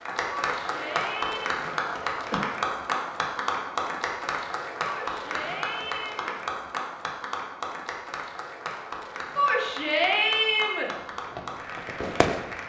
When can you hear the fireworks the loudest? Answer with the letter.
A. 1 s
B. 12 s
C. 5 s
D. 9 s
B.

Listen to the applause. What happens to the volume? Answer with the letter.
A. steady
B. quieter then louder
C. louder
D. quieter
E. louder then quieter
D.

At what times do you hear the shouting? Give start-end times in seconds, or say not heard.
0.5-1.6, 4.8-6.3, 9.3-10.9.